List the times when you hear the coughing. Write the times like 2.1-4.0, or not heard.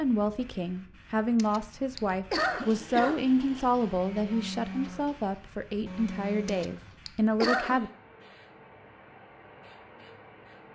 1.4-3.2, 6.5-7.8.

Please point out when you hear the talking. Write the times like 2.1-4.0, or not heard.
0.0-7.9.